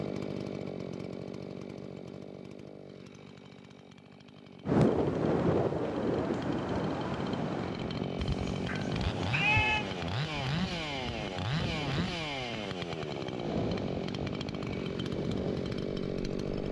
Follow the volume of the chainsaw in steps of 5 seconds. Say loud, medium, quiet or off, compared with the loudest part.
medium, loud, loud, loud.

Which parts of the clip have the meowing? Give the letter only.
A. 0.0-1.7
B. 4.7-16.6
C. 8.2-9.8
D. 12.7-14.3
C.